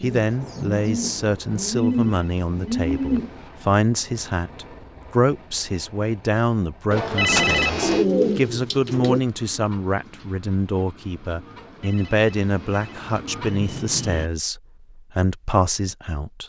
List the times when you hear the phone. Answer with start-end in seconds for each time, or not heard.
1.8-3.5, 6.9-8.1, 11.6-13.1.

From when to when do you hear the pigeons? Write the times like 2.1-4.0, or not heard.
0.0-3.3, 7.2-9.2.